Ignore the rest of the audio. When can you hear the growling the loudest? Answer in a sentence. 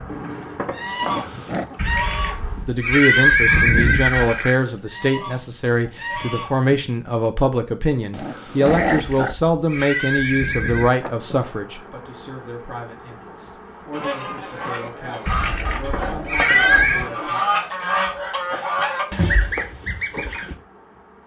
The loudest moment of the growling is at 9 seconds.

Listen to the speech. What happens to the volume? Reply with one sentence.
The volume of the speech goes down.